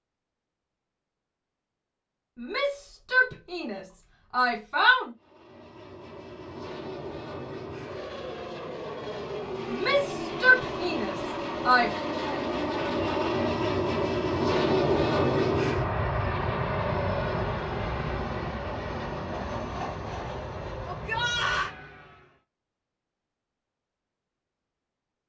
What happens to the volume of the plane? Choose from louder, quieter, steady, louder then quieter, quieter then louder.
louder then quieter.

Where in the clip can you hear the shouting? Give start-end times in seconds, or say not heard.
2.4-5.0, 9.7-11.9, 20.9-21.7.